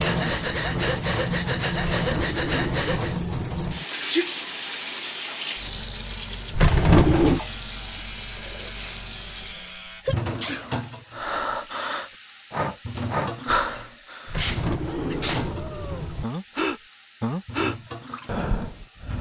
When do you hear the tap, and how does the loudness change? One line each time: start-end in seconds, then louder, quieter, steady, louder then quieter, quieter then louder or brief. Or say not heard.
0.0-19.1 quieter.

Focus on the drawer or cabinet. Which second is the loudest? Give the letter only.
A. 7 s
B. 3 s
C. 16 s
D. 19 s
A.